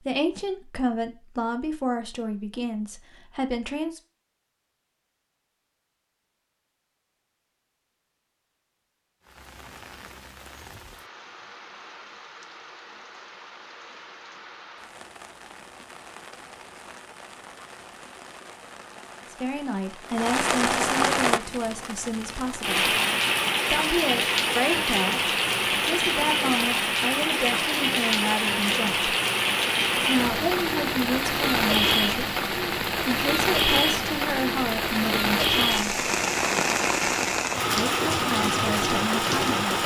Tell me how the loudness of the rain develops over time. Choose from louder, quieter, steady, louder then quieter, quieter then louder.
louder.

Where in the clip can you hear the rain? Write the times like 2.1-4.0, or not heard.
9.2-39.8.